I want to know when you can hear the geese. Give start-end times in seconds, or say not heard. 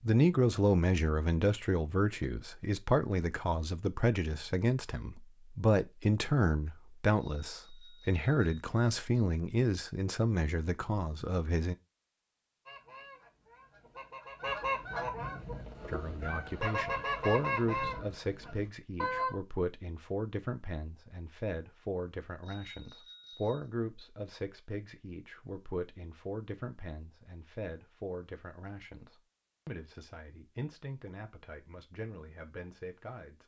12.7-19.4.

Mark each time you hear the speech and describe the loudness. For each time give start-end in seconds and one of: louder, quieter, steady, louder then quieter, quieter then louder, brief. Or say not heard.
0.0-11.8 steady
15.8-33.4 quieter.